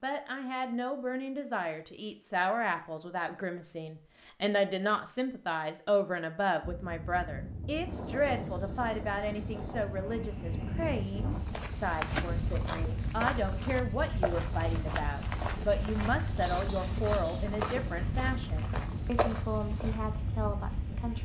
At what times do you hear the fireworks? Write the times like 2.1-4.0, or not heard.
not heard.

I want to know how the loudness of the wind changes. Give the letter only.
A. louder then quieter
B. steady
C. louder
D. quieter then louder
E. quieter
B.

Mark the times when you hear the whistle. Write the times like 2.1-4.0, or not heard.
not heard.